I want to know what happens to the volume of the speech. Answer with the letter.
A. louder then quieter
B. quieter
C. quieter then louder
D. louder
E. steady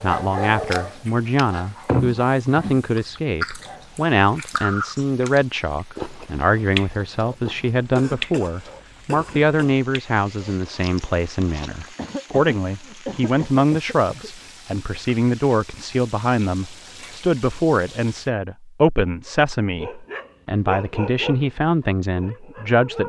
E.